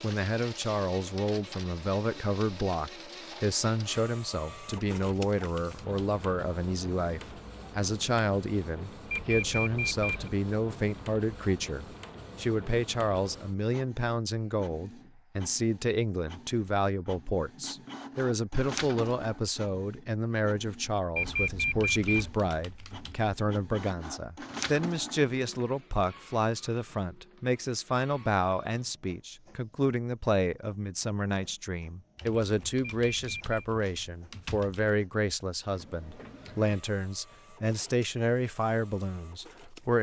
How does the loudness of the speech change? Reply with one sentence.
The volume of the speech stays about the same.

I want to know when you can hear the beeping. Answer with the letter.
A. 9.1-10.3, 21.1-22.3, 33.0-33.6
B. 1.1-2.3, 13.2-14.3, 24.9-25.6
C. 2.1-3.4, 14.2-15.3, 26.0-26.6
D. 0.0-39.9
A.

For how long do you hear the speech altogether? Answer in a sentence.
The speech can be heard for 40 seconds in total.